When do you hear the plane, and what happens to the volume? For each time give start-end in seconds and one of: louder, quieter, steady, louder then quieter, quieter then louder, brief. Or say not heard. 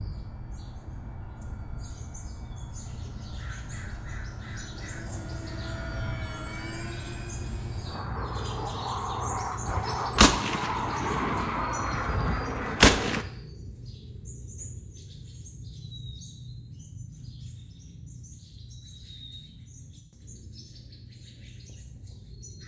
0.0-13.2 louder.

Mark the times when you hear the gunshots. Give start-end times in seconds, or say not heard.
9.7-13.2.